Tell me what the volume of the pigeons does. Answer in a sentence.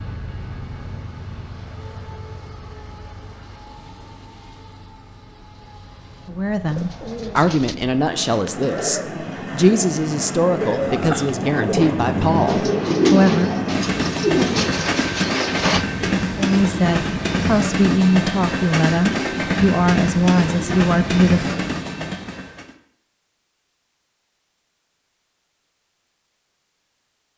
The loudness of the pigeons goes up.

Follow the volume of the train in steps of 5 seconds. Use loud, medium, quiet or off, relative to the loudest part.
quiet, quiet, loud, loud, loud, off.